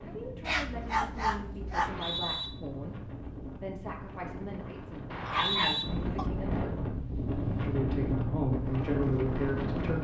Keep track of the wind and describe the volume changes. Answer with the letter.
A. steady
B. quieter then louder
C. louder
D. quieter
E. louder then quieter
C.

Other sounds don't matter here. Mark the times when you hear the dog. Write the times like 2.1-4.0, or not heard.
0.5-2.0, 5.2-6.3.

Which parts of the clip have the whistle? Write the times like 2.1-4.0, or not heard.
1.7-2.5, 5.1-5.8.